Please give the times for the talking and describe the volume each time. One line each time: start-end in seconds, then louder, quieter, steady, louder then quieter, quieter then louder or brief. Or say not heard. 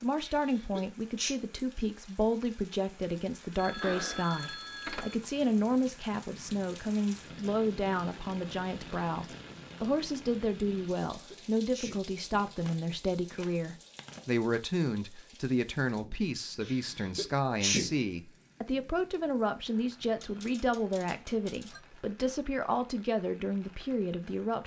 0.0-24.6 steady.